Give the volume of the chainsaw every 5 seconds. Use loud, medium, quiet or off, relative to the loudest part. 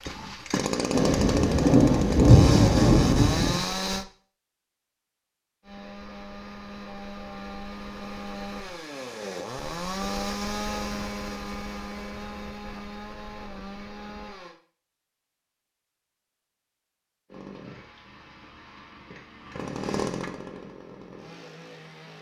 loud, medium, medium, medium, medium.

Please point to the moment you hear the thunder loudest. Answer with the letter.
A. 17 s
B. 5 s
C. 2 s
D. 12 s
C.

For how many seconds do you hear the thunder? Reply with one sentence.
The thunder can be heard for 3 seconds in total.